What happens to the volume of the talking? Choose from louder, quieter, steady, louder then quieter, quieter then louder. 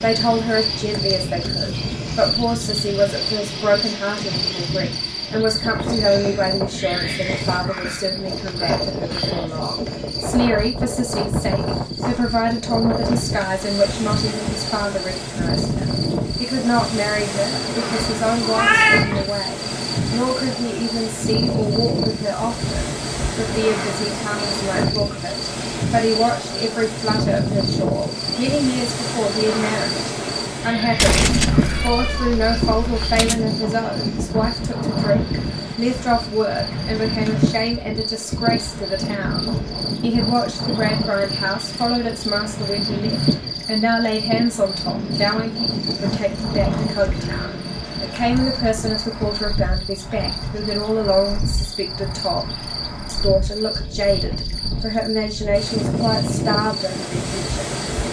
steady.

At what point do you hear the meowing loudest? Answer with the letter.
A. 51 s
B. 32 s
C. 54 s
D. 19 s
D.